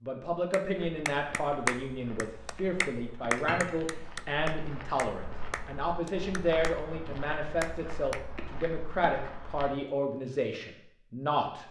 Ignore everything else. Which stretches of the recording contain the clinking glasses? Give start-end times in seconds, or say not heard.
3.4-4.0.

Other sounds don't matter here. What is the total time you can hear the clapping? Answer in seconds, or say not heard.
7 s.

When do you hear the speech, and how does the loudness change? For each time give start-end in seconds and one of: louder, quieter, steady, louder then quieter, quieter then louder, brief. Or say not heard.
0.0-11.6 steady.